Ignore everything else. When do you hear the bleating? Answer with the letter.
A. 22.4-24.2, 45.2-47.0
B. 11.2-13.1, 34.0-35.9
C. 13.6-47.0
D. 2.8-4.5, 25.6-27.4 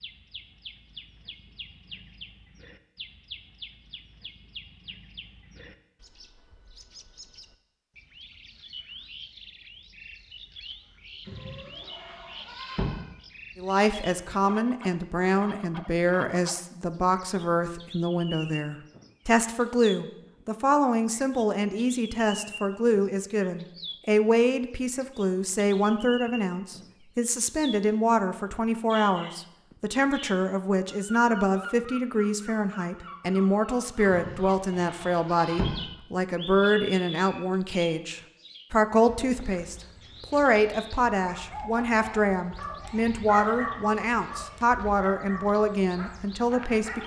B.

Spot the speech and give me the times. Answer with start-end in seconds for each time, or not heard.
13.6-47.0.